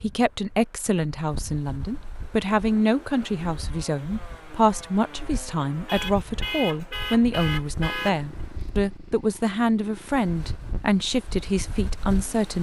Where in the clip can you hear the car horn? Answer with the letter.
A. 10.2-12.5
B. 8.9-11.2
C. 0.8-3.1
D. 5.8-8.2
D.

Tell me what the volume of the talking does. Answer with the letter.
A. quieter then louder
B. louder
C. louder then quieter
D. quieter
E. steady
E.